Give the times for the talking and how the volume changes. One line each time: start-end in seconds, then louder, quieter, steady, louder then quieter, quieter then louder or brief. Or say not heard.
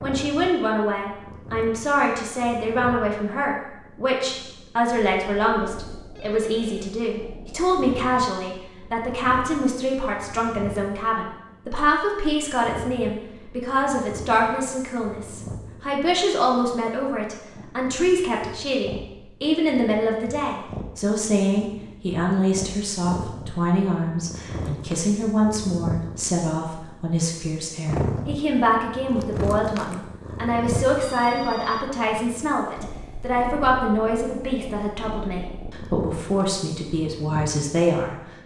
0.0-38.2 steady.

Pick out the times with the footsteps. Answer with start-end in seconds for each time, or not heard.
not heard.